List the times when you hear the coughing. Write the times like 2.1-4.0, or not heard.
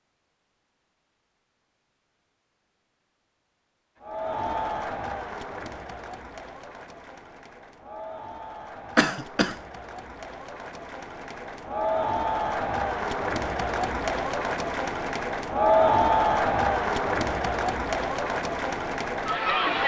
8.9-9.6.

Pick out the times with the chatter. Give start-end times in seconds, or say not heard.
4.0-19.8.